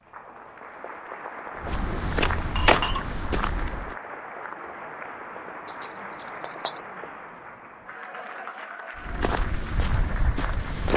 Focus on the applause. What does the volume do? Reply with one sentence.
The loudness of the applause stays about the same.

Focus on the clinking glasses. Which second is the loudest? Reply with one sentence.
The loudest moment of the clinking glasses is at 3 seconds.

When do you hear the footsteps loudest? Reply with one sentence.
The loudest moment of the footsteps is at 3 seconds.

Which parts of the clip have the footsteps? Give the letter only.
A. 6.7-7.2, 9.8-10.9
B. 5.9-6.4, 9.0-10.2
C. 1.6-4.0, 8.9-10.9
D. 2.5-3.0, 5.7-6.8
C.